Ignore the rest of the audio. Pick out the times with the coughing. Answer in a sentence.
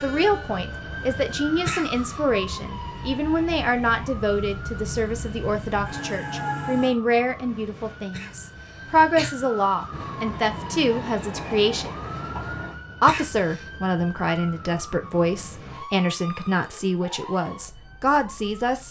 The coughing can be heard from 1.6 to 2.2 s, from 8.1 to 9.3 s and from 13.1 to 13.7 s.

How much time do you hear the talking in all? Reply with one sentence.
You can hear the talking for 18 seconds altogether.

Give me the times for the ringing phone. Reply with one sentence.
You can't hear the ringing phone here.